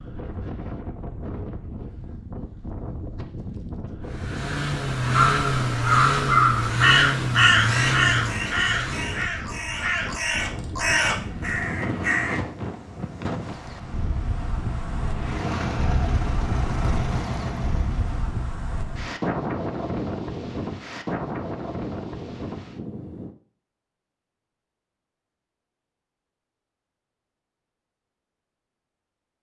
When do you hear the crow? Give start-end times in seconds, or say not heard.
5.1-12.3.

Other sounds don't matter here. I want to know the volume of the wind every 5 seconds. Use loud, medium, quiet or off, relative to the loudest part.
medium, medium, loud, loud, loud, off.